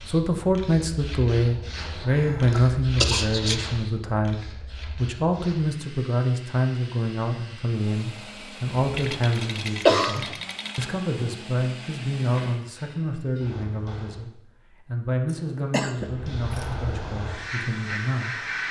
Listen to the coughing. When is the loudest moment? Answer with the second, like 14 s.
10 s.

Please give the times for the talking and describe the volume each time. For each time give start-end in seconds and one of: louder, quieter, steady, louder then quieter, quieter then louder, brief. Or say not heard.
0.1-18.6 quieter.